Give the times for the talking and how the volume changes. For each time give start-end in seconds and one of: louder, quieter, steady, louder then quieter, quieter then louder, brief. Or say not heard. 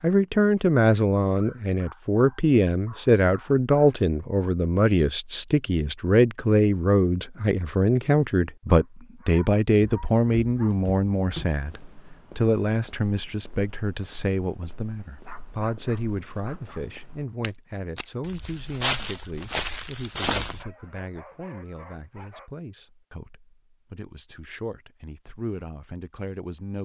0.0-26.8 quieter.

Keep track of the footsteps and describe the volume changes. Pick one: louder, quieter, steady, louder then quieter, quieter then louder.
quieter then louder.